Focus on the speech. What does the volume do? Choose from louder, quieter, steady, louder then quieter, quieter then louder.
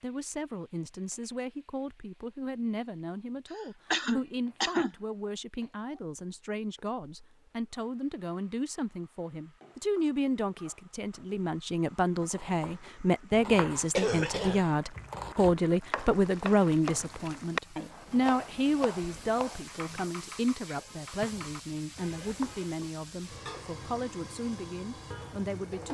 louder then quieter.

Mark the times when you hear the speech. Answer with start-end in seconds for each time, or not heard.
0.0-25.9.